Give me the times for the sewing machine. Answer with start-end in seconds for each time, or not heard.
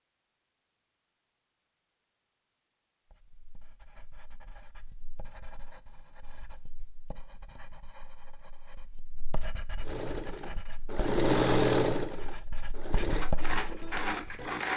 9.8-14.7.